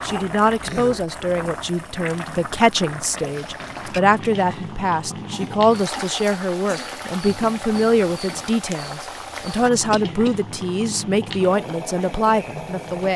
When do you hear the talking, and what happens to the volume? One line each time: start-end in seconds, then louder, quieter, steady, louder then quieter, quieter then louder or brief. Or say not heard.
0.0-13.1 steady.